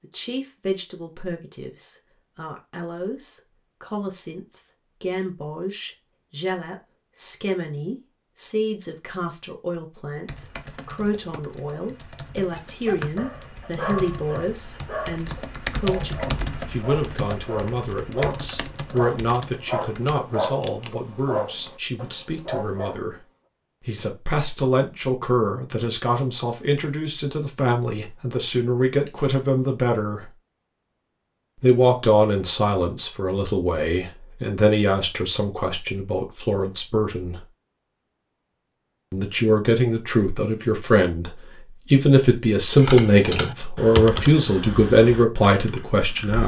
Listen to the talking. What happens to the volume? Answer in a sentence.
The volume of the talking goes up.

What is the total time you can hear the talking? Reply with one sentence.
You can hear the talking for 43 seconds altogether.